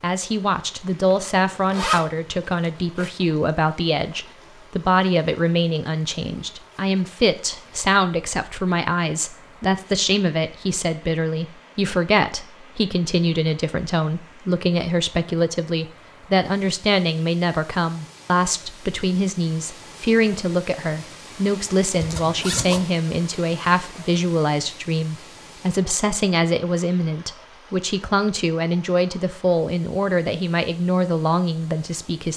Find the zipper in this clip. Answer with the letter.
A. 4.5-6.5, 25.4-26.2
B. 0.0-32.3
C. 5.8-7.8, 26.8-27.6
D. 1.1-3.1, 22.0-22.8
D.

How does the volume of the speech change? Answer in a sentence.
The volume of the speech stays about the same.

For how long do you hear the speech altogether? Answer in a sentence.
The speech can be heard for 32 seconds in total.